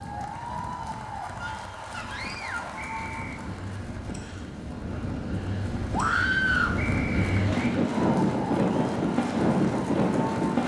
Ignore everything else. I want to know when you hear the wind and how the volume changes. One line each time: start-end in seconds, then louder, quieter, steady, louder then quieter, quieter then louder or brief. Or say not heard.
0.0-10.6 louder.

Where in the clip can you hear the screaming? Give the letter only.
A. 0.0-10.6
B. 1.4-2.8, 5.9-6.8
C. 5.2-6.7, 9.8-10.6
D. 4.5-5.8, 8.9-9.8
B.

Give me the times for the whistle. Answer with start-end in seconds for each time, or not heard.
2.8-3.4, 6.8-7.5.